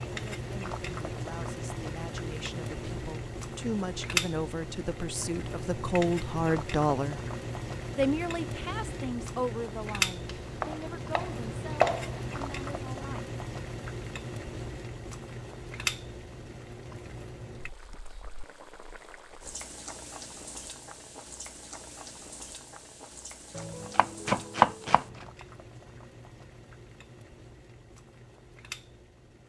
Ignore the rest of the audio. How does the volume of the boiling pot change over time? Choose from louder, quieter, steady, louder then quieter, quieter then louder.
quieter.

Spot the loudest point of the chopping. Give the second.
24 s.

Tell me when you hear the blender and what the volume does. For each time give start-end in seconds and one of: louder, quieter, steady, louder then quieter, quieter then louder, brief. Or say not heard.
not heard.